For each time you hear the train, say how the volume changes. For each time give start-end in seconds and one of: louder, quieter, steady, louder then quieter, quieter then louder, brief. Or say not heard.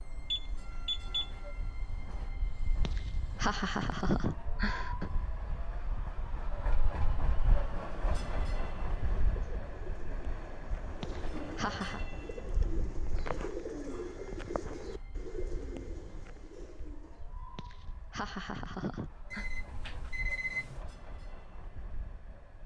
0.0-22.6 louder then quieter.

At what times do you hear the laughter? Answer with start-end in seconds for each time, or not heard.
2.9-5.1, 11.0-12.1, 17.6-19.4.